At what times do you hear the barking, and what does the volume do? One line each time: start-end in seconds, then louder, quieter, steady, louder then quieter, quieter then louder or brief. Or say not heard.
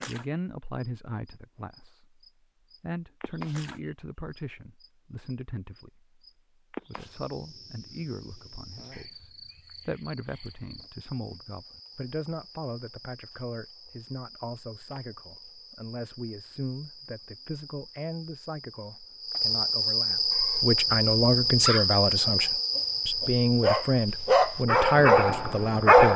20.3-26.1 louder.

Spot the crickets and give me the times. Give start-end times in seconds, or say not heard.
0.0-26.1.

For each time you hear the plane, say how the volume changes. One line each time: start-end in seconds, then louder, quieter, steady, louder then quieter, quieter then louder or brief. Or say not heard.
not heard.